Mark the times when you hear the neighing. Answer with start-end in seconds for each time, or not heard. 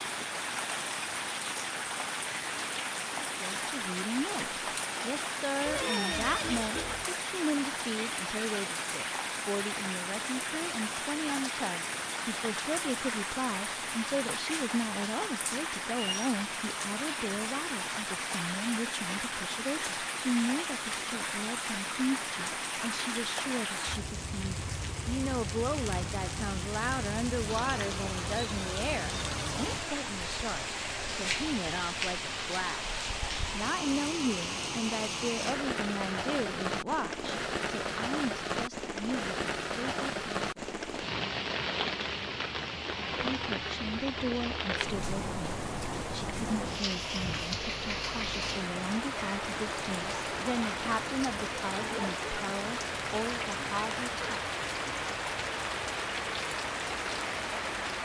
5.7-7.0.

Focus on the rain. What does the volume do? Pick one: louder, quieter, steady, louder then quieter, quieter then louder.
steady.